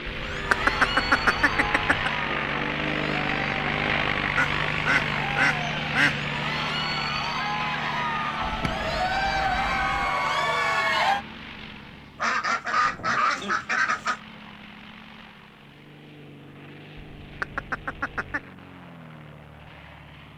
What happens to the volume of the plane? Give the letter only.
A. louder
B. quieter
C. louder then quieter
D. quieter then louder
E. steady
B.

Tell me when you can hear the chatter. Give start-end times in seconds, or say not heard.
0.1-11.2.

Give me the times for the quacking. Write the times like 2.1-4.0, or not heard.
0.3-2.1, 4.3-6.2, 8.4-10.1, 12.2-14.2, 17.2-18.4.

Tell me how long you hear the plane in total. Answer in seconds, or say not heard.
20 s.